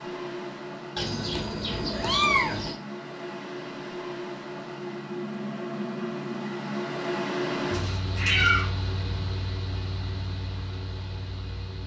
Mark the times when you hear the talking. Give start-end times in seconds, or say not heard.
not heard.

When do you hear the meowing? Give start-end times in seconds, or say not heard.
0.9-2.8, 7.7-8.7.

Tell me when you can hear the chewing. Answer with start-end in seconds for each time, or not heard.
not heard.